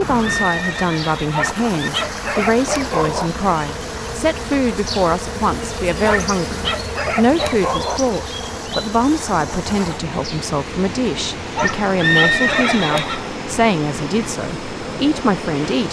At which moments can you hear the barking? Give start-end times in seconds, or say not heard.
1.3-3.3, 6.0-8.0, 11.6-13.1.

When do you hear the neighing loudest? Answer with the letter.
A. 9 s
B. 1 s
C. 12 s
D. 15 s
C.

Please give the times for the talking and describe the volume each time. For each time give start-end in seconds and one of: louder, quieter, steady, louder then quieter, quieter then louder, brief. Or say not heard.
0.0-15.8 steady.